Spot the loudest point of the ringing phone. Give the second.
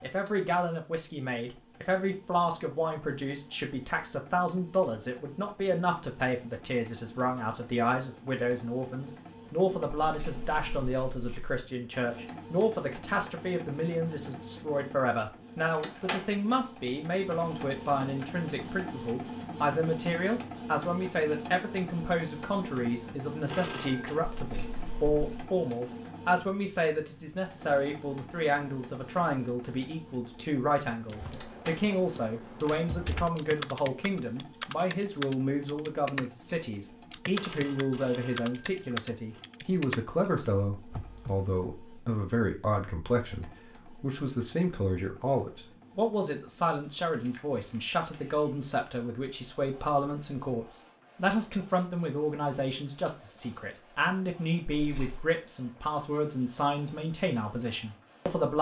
24 s.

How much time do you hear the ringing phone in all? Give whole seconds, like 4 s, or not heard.
3 s.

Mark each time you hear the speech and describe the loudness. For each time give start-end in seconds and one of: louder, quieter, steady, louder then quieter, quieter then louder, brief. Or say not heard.
0.0-58.5 steady.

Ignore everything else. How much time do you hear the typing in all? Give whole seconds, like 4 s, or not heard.
11 s.